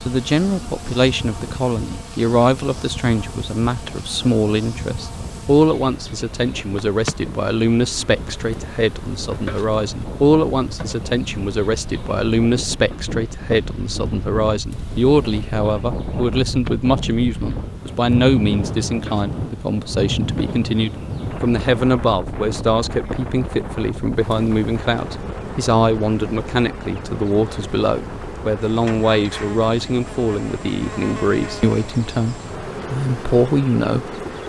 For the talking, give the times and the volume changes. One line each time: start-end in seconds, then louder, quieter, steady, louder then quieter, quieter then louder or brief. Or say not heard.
0.1-34.1 steady.